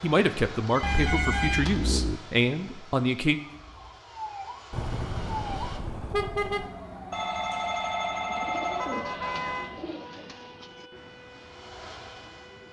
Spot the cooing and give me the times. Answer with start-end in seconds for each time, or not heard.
8.2-12.6.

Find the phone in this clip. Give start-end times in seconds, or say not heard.
0.7-1.9, 7.1-9.0.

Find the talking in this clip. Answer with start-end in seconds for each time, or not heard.
0.0-3.4.